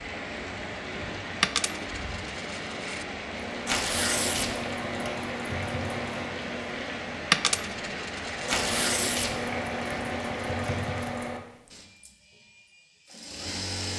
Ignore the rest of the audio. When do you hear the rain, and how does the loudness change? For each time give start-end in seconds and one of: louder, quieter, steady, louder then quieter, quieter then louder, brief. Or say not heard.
0.0-11.3 steady.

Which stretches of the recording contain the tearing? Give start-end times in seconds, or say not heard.
3.6-4.5, 8.4-9.3.